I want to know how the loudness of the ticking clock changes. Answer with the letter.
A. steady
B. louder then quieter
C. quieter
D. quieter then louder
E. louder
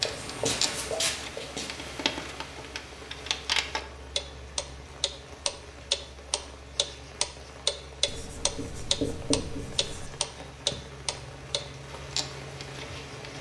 B.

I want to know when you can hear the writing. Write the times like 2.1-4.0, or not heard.
0.0-1.5, 8.1-10.1.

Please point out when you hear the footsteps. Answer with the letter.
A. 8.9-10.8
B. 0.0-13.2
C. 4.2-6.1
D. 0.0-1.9
D.